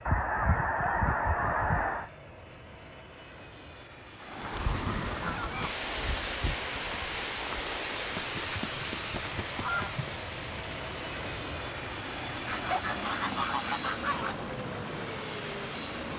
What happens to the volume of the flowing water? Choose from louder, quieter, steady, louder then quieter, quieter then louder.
quieter.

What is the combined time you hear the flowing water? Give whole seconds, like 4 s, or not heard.
12 s.